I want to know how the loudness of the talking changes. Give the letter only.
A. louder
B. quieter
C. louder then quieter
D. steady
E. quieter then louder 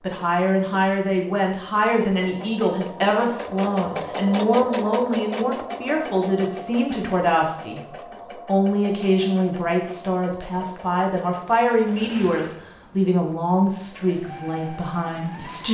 D.